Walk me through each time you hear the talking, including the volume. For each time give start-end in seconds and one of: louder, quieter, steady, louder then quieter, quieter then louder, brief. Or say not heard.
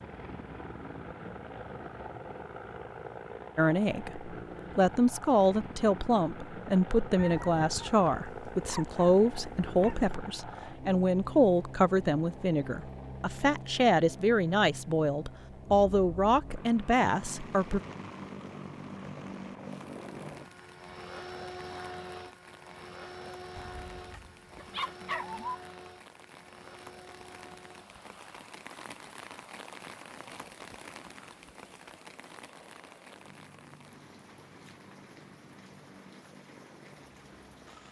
3.5-17.8 steady.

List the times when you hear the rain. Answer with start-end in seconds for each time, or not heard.
17.2-37.8.